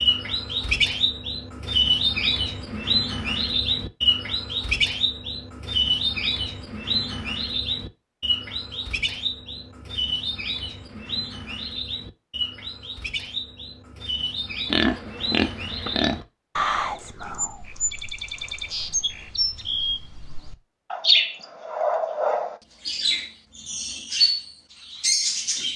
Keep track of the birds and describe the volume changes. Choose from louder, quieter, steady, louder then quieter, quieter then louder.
quieter then louder.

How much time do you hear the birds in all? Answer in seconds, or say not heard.
26 s.